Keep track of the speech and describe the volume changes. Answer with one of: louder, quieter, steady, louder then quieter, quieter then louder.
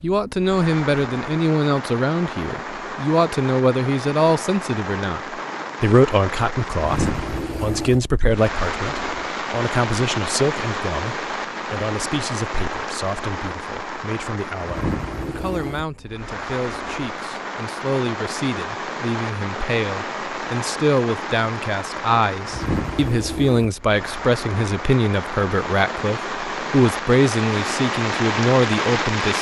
quieter then louder.